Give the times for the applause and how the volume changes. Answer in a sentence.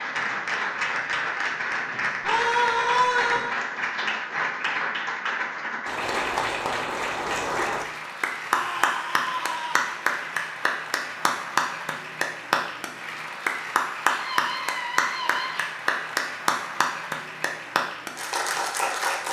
The applause can be heard from 0.0 to 19.2 s, at a steady volume.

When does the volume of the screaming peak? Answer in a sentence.
The volume of the screaming peaks at 3 seconds.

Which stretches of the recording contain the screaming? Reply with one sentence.
The screaming can be heard from 2.2 to 3.5 s, from 8.5 to 9.9 s and from 14.1 to 15.7 s.